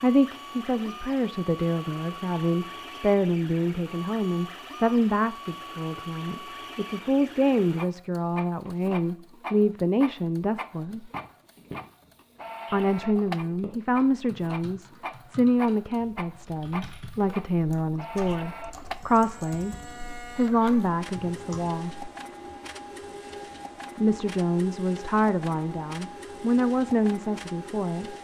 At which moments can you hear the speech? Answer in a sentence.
The speech can be heard from 0.0 to 11.1 s, from 12.7 to 19.8 s, from 20.4 to 22.1 s and from 23.9 to 28.1 s.